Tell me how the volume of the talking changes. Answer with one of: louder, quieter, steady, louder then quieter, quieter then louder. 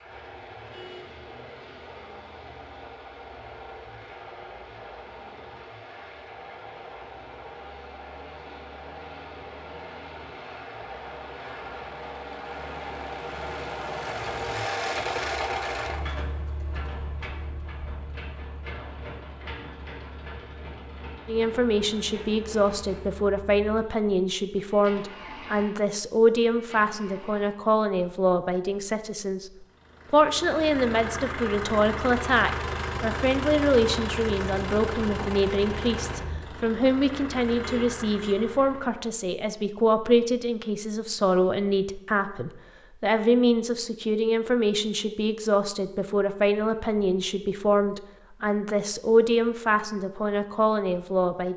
steady.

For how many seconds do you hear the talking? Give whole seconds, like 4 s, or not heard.
30 s.